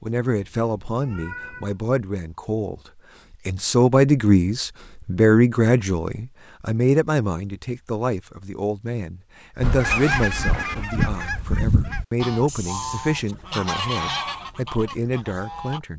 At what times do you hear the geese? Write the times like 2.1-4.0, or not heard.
9.6-15.8.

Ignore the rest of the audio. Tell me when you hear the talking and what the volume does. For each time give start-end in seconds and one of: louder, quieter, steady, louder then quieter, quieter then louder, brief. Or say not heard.
0.0-2.8 brief
3.5-15.9 quieter.